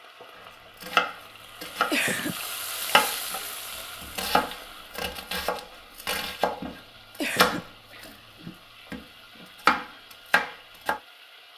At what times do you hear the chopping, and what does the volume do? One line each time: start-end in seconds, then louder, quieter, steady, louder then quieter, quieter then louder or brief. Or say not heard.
0.8-2.0 brief
2.8-3.4 brief
4.0-9.0 louder then quieter
9.7-11.0 brief.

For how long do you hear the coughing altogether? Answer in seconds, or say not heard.
2 s.